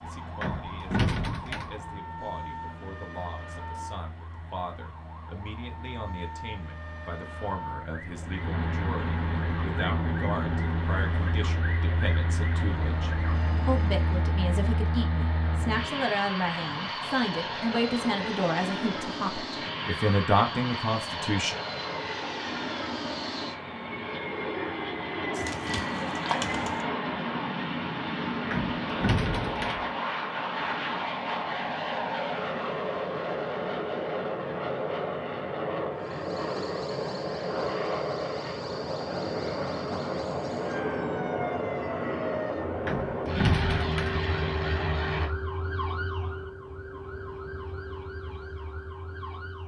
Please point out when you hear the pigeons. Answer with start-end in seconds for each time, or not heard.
25.3-26.9.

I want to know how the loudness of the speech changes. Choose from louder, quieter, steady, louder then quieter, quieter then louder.
louder.